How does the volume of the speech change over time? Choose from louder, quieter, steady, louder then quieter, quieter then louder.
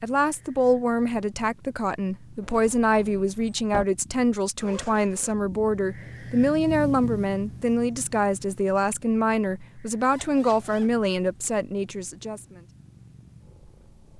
steady.